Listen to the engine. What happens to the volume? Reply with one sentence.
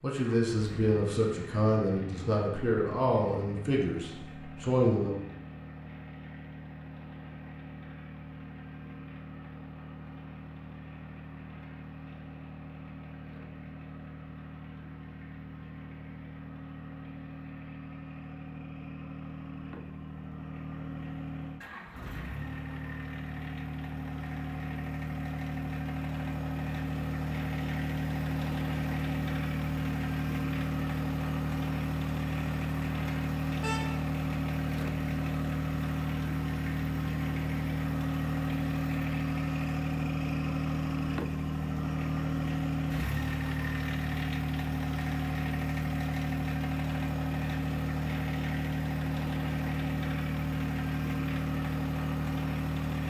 The loudness of the engine goes up.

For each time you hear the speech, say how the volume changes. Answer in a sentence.
The speech can be heard from 0.0 to 5.2 s, at a steady volume.